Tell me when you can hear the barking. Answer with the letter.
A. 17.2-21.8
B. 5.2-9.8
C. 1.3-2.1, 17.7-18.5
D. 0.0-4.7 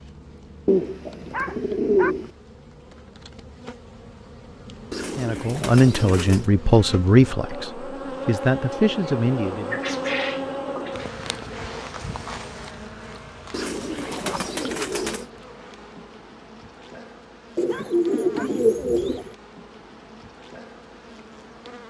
C.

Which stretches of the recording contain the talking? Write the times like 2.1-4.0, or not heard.
5.2-9.8.